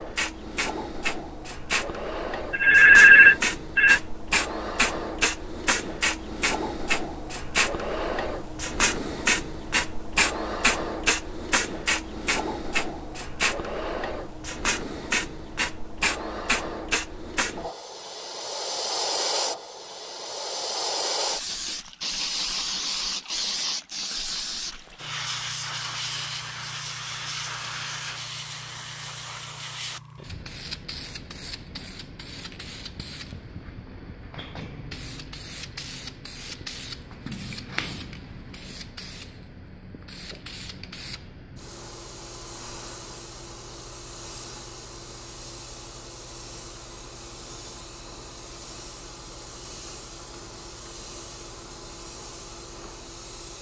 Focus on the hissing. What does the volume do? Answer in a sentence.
The volume of the hissing goes down.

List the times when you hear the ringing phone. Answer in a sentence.
The ringing phone can be heard from 2.5 to 4.0 s.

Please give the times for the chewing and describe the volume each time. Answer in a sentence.
You can't hear the chewing here.